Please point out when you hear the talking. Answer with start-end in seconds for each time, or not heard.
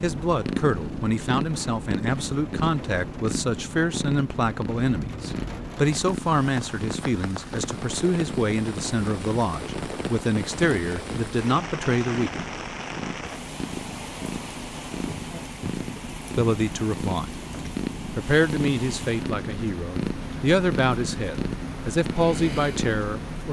0.0-12.4, 16.4-23.4.